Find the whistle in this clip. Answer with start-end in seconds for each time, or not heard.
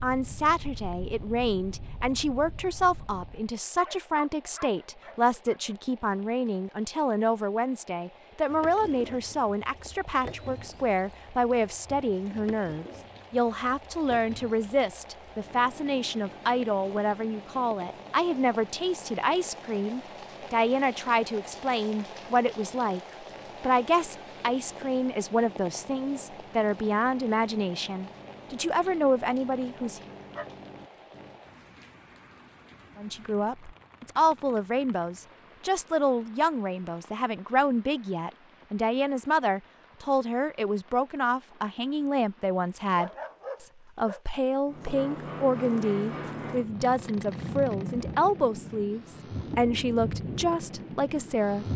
not heard.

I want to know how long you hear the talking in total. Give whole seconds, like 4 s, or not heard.
48 s.